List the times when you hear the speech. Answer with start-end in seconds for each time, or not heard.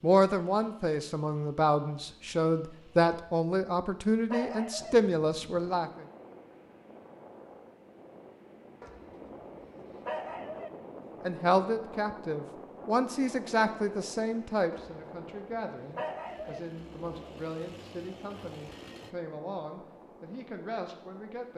0.0-6.0, 11.2-21.5.